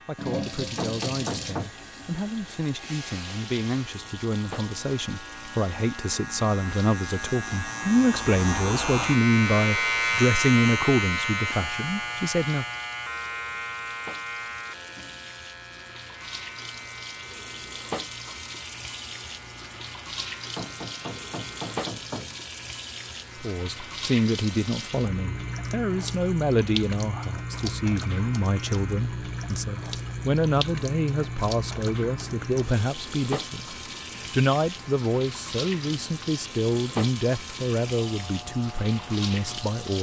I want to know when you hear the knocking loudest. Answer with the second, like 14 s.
1 s.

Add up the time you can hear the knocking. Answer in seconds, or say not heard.
3 s.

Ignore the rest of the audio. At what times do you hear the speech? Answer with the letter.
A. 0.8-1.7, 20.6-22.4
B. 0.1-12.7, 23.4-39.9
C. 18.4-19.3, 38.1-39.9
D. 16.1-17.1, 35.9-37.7
B.